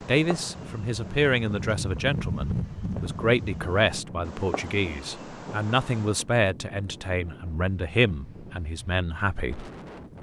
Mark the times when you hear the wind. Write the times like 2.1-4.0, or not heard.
0.2-10.1.